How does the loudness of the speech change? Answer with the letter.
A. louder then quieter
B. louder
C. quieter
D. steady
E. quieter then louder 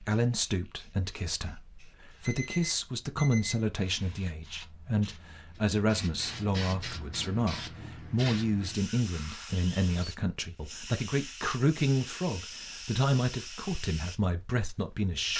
D.